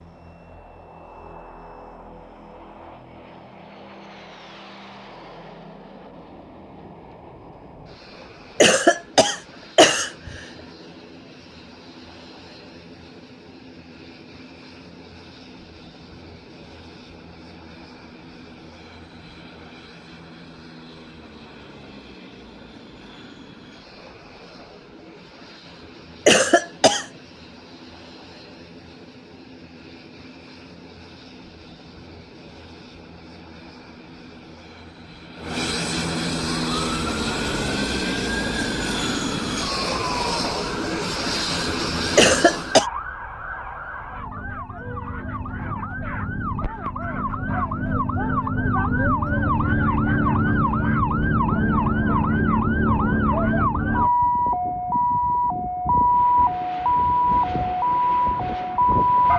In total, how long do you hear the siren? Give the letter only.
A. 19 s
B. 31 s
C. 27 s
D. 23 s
D.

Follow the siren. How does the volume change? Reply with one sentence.
The volume of the siren goes up.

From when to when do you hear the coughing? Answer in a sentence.
You can hear the coughing from 8.6 to 10.4 s, from 26.2 to 27.1 s and from 42.1 to 42.9 s.